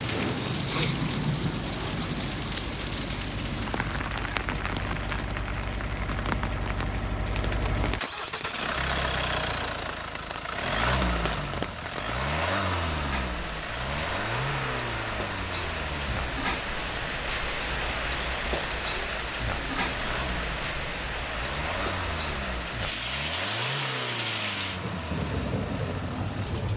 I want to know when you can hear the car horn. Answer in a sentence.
You can't hear the car horn here.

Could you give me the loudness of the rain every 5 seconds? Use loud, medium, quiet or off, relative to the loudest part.
loud, medium, medium, loud, loud, loud.